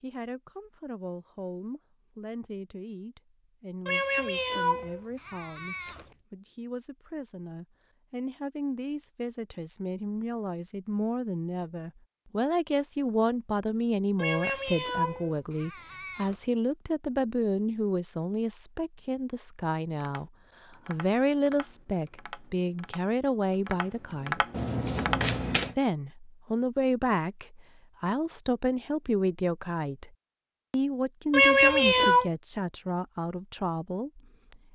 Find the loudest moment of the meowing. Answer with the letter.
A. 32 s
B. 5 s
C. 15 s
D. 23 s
A.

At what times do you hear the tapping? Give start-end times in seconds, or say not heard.
19.9-25.4.